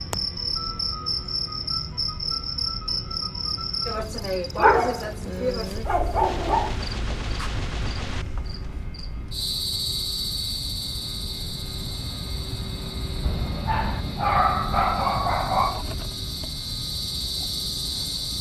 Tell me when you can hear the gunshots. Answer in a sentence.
The gunshots can be heard from 6.2 to 8.2 s.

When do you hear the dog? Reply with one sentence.
The dog can be heard from 4.5 to 6.8 s and from 13.2 to 15.8 s.